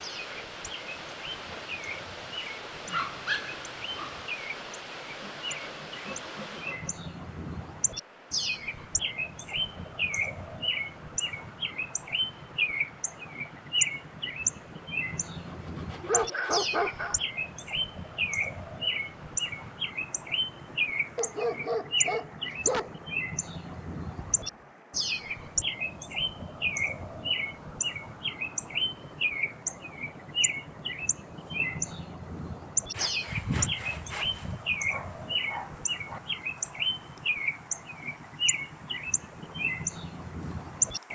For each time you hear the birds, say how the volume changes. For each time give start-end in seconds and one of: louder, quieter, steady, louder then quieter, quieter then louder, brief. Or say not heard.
0.0-41.1 louder.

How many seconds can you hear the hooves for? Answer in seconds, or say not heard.
not heard.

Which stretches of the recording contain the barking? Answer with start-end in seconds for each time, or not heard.
2.9-4.2, 16.1-17.2, 21.1-22.9, 34.9-36.2.